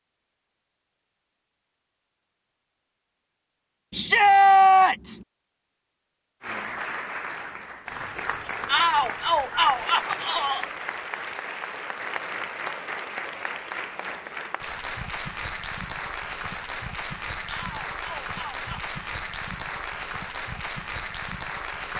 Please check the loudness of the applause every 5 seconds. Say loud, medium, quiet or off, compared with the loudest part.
off, loud, loud, loud, loud.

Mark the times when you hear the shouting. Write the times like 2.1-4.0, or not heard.
3.9-5.2, 8.7-10.7, 17.4-18.9.